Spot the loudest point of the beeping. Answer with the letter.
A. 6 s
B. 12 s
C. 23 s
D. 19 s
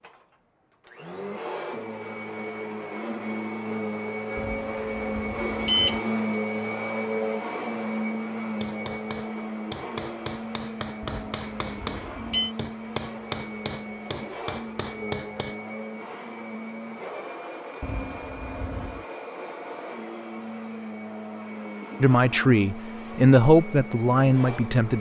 A.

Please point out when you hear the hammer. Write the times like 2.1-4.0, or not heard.
8.6-15.6.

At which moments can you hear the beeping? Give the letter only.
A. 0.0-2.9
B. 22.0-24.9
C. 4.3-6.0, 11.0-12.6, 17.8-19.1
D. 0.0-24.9
C.